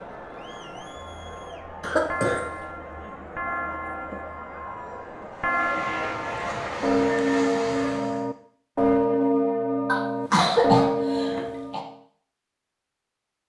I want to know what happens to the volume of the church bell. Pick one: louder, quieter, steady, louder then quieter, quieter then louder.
louder.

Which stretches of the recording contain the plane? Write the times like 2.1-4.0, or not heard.
5.3-8.3.